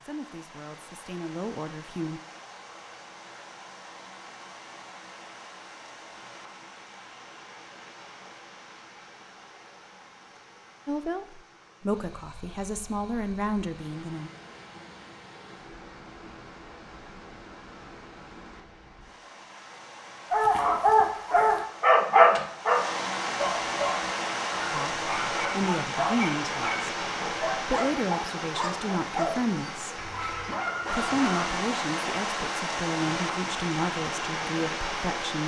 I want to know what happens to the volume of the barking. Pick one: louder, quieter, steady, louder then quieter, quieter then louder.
quieter.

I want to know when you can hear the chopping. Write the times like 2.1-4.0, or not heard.
not heard.